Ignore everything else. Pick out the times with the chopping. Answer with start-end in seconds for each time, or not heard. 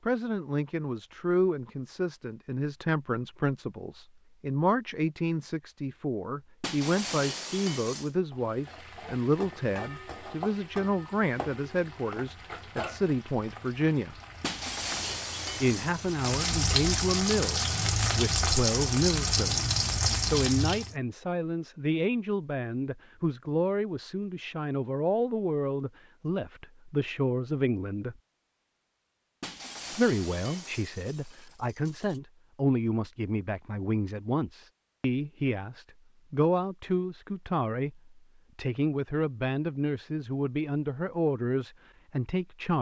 not heard.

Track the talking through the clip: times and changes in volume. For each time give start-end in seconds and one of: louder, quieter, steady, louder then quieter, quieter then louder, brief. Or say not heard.
0.1-14.2 steady
15.6-28.1 steady
29.9-42.7 steady.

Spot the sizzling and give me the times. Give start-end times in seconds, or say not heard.
8.3-20.9.